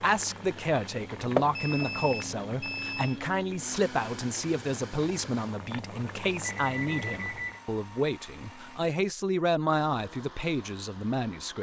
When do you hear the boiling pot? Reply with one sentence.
You can hear the boiling pot from 0.0 to 7.7 s.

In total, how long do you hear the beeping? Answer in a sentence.
You can hear the beeping for 3 seconds altogether.